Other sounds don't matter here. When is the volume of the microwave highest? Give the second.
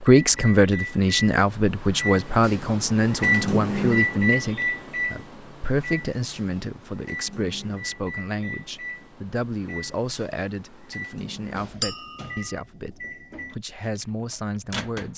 4 s.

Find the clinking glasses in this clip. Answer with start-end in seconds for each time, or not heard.
11.8-12.6.